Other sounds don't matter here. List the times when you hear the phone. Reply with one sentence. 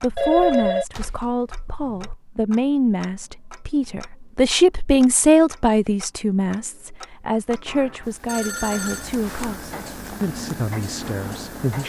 The phone can be heard from 0.1 to 2.1 s and from 7.7 to 9.1 s.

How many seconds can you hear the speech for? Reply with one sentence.
The speech can be heard for 12 seconds in total.